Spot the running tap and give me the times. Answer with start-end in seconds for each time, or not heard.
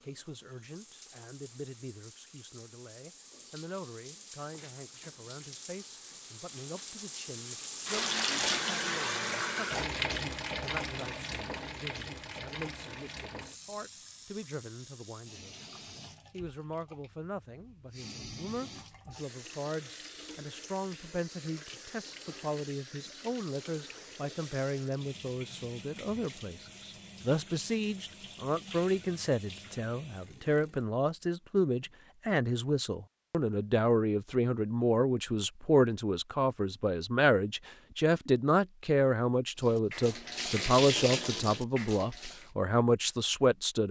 0.0-30.9, 39.5-42.5.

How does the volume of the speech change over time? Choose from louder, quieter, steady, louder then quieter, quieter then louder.
louder.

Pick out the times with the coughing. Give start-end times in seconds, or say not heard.
not heard.